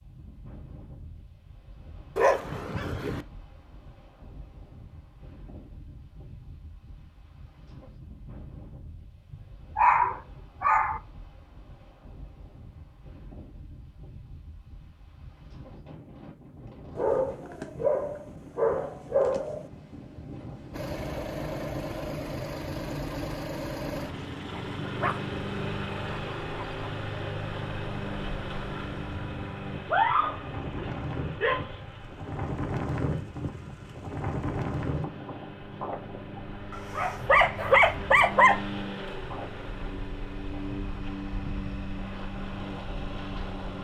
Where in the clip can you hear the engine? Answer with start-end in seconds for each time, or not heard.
20.7-43.7.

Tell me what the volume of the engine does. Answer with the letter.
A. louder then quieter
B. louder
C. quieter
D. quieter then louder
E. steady
D.